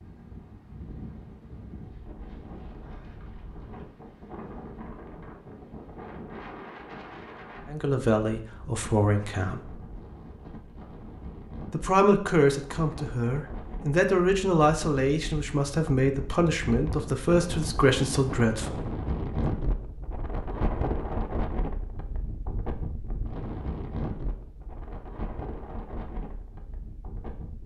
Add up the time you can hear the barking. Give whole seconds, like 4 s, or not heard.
not heard.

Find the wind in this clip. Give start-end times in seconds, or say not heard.
0.0-27.6.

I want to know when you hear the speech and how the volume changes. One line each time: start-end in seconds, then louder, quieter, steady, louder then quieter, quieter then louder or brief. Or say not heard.
7.7-9.7 brief
11.7-18.9 steady.